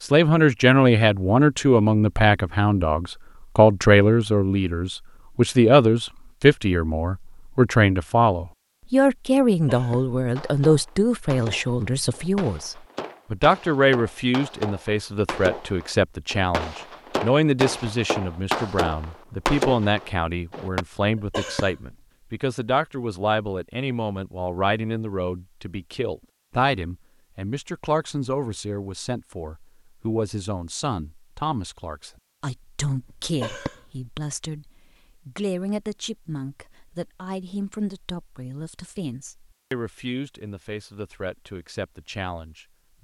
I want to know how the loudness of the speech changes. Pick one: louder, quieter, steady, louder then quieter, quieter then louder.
quieter.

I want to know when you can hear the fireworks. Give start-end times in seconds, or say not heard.
10.3-20.9.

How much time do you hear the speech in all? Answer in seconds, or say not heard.
43 s.